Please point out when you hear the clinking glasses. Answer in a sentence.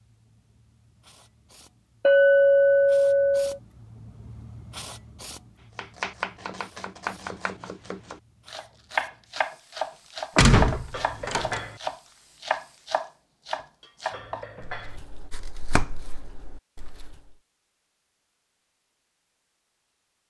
The clinking glasses can be heard from 2.0 to 3.6 s, from 10.9 to 11.8 s and from 14.1 to 15.0 s.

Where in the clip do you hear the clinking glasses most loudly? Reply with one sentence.
The volume of the clinking glasses peaks at 2 seconds.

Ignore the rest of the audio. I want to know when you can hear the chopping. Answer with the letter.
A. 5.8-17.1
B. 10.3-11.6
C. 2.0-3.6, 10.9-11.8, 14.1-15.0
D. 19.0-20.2
A.